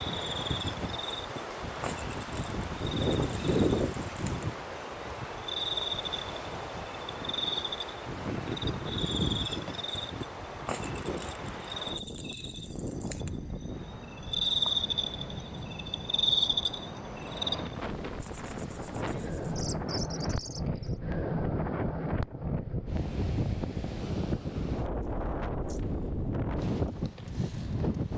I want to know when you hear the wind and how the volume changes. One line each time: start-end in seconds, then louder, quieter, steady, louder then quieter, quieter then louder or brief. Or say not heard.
0.0-28.1 quieter then louder.